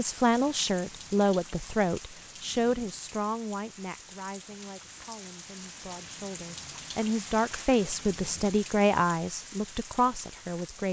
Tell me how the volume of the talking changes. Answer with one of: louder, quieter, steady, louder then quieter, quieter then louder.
quieter then louder.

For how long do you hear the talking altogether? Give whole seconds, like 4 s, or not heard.
11 s.